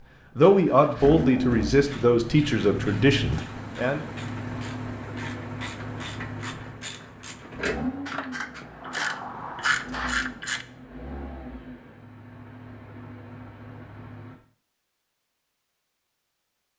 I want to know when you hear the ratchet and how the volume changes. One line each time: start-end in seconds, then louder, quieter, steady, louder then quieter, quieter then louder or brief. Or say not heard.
1.7-10.7 louder.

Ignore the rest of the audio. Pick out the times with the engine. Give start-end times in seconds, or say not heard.
0.1-14.3.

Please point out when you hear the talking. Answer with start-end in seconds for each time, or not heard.
0.3-4.0.